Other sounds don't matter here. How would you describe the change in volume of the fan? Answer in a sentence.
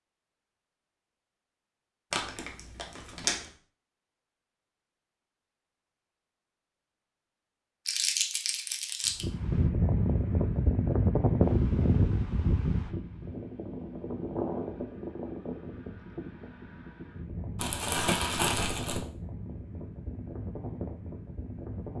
The volume of the fan goes down.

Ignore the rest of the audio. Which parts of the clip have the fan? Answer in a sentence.
The fan can be heard from 9.2 to 21.9 s.